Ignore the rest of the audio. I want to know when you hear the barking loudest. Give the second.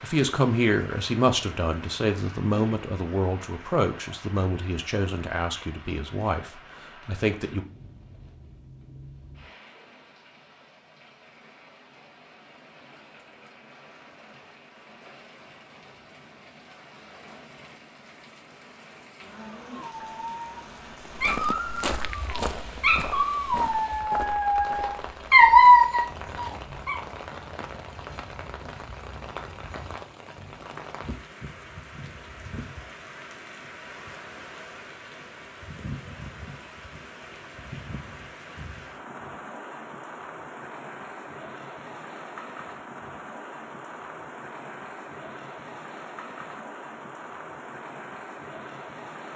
26 s.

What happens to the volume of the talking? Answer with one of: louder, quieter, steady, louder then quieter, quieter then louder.
quieter.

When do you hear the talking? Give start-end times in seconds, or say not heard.
0.0-7.7.